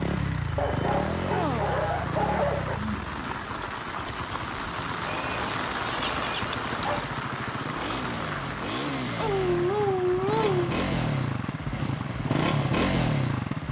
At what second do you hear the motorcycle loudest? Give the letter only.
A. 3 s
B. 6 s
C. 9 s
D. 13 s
D.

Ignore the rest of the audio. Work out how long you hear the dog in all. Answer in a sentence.
You can hear the dog for 6 seconds altogether.